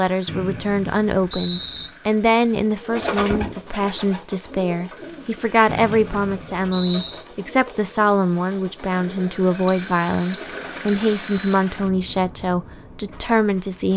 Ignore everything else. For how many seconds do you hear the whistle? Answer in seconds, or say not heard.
6 s.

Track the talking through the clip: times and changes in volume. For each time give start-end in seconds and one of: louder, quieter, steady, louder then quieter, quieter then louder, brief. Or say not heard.
0.0-13.9 steady.